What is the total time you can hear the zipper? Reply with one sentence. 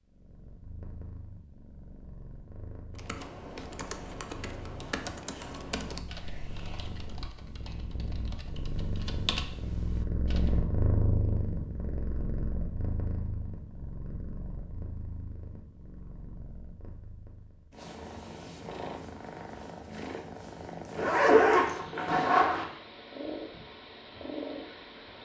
The zipper can be heard for 2 seconds in total.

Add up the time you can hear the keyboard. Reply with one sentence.
The keyboard can be heard for 8 seconds in total.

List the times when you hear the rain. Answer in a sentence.
You can't hear the rain here.